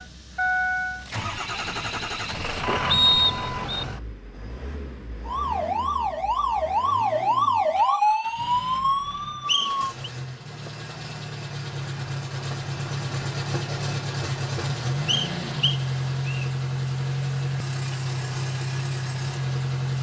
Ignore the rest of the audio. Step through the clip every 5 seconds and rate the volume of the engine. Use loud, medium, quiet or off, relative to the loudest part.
loud, quiet, loud, loud.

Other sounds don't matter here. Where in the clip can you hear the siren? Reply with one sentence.
You can hear the siren from 5.2 to 9.9 s.